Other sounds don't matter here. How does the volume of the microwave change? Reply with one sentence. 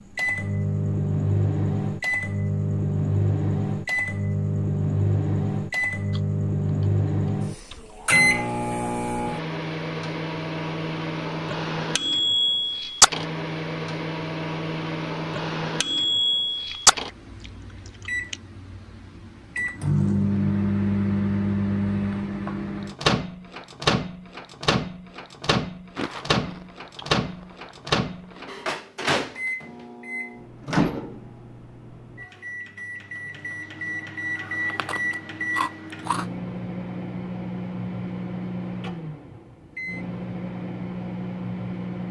The volume of the microwave goes down.